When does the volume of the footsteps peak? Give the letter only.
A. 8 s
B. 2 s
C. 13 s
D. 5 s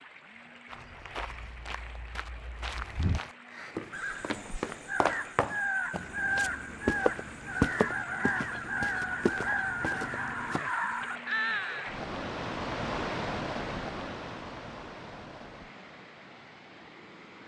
A.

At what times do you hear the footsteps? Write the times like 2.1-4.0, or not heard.
0.7-10.6.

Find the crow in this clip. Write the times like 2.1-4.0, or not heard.
3.5-11.9.